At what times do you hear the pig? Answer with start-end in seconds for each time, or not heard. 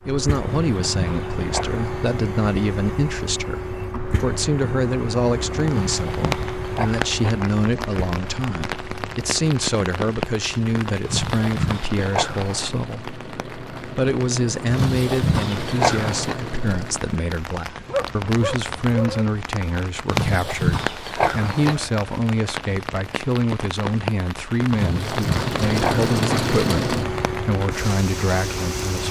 0.4-1.8, 5.8-7.5, 11.0-12.7, 14.7-16.4, 20.1-21.9, 24.7-26.5.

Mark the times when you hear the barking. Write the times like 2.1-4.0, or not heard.
17.9-19.2.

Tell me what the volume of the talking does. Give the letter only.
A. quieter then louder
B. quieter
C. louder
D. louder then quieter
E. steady
E.